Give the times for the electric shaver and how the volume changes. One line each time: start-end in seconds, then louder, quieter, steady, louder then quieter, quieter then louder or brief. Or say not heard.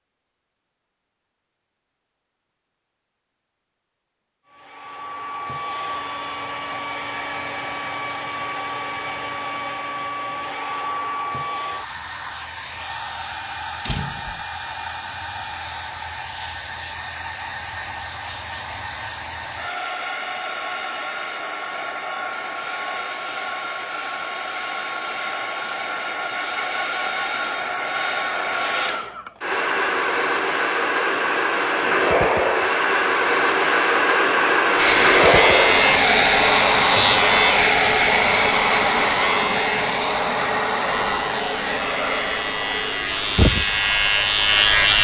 34.8-45.0 quieter then louder.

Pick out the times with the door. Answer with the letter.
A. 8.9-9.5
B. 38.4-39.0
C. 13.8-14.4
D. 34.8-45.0
C.